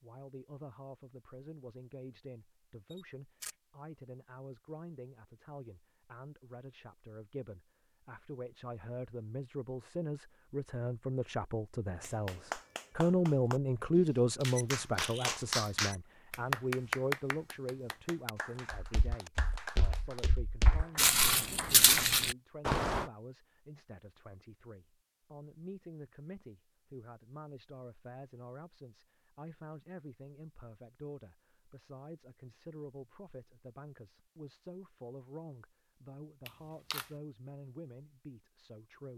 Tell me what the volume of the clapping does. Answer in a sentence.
The loudness of the clapping goes up, then down.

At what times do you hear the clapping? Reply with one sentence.
The clapping can be heard from 12.0 to 22.1 s.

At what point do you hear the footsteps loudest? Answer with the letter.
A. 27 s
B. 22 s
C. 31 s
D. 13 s
B.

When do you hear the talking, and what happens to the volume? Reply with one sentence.
You can hear the talking from 0.0 to 39.1 s, getting louder then quieter.